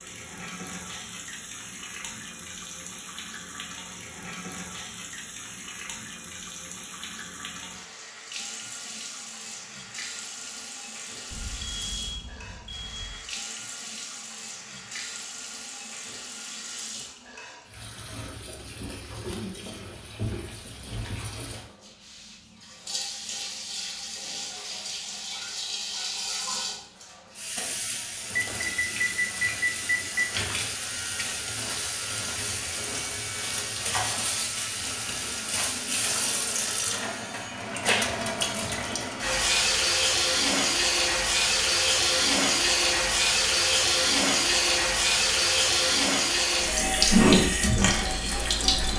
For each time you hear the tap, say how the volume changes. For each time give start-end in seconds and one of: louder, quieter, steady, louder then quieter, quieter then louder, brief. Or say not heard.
0.0-48.9 louder.